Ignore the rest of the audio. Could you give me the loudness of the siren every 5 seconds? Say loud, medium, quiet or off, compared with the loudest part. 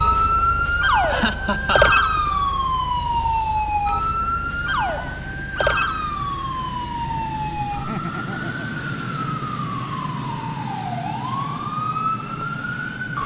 loud, medium, medium.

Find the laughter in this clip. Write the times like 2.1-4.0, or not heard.
1.1-1.9, 7.7-8.8.